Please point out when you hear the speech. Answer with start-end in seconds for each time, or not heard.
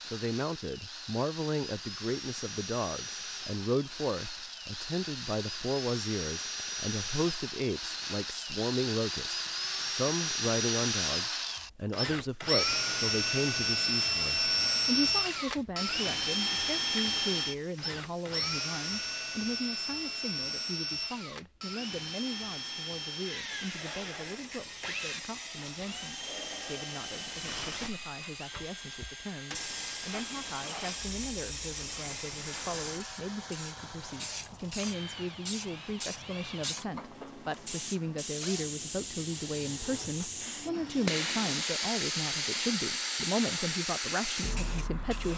0.1-45.3.